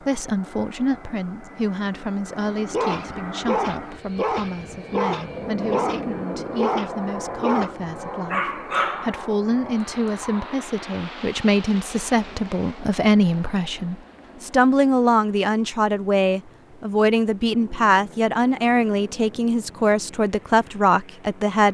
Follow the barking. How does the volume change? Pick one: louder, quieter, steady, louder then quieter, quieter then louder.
steady.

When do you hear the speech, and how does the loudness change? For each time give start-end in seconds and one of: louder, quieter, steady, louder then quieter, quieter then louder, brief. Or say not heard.
0.1-21.6 louder.